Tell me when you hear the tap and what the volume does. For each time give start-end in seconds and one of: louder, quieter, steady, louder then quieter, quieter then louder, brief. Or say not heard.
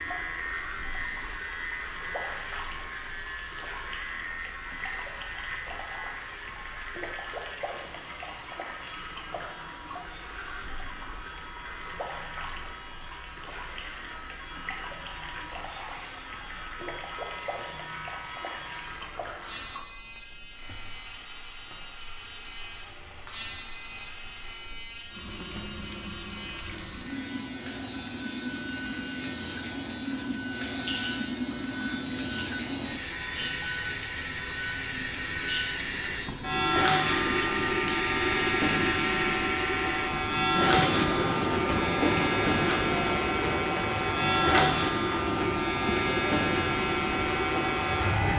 0.0-48.3 louder.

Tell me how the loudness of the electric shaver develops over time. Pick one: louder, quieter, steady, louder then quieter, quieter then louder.
louder.